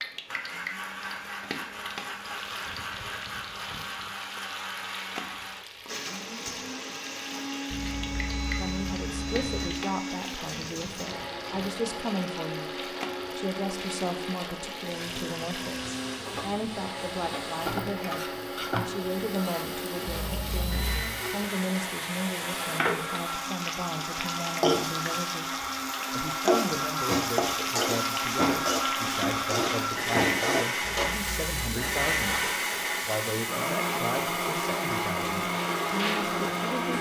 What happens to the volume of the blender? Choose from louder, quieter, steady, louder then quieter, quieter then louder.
louder.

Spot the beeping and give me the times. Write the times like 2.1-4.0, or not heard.
7.7-9.7, 20.1-21.1, 30.8-32.3.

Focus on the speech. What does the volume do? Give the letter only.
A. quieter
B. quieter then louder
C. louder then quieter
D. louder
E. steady
E.